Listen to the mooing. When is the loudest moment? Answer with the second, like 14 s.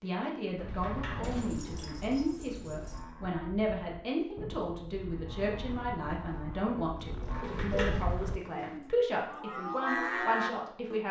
10 s.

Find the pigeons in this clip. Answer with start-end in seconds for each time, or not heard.
1.2-3.0, 7.0-8.2.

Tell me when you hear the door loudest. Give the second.
8 s.